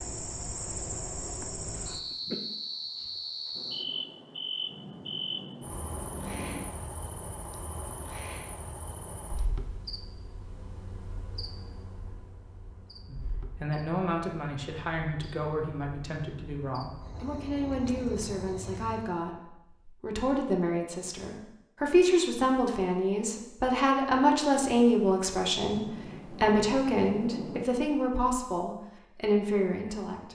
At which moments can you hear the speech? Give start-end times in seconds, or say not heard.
13.1-30.3.